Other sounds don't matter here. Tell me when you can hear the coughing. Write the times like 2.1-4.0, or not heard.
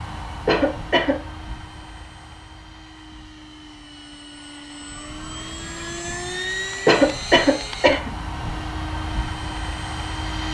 0.5-1.1, 6.8-8.1.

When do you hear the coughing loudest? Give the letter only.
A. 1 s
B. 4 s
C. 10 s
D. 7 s
D.